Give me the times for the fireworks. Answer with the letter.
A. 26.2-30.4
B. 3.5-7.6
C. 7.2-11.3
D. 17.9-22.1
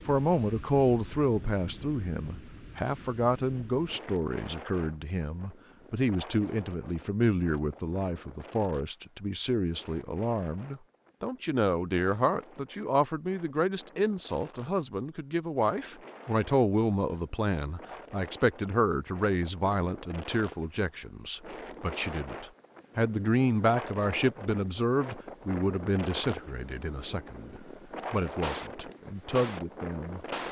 A.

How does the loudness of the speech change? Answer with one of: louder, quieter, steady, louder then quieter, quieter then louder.
steady.